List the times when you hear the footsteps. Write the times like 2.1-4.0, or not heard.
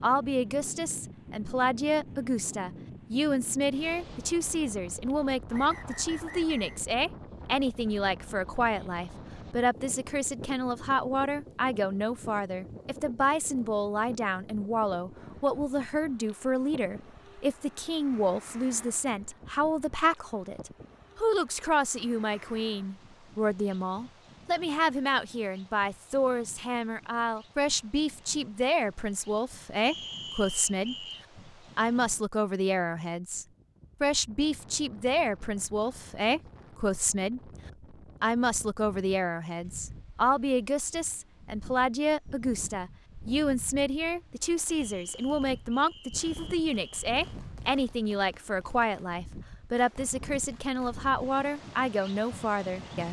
not heard.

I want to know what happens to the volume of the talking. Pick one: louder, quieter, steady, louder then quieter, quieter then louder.
steady.